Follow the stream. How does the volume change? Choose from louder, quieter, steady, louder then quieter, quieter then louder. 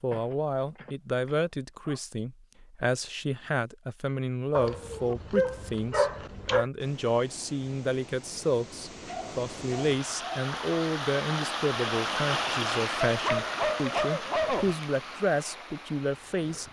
louder then quieter.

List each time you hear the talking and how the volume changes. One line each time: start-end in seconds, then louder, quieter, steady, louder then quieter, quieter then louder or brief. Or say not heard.
0.0-16.6 steady.